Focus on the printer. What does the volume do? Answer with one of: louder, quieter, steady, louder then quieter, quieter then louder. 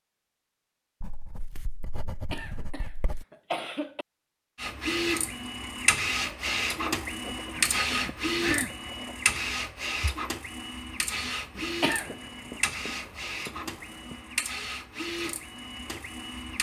quieter.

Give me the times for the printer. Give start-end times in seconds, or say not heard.
4.5-16.5.